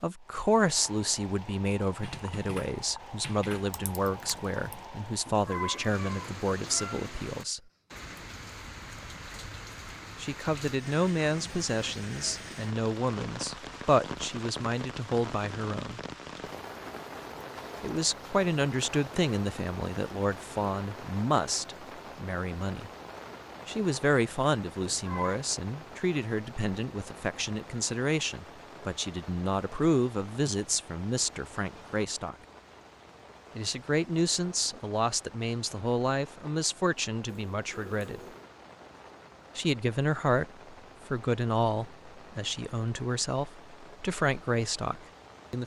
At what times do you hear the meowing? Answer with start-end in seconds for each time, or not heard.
5.2-7.2, 24.9-25.4, 37.2-38.5.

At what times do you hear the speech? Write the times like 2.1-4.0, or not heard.
0.0-7.6, 10.2-16.0, 17.8-22.9, 23.6-32.4, 33.5-38.2, 39.5-45.6.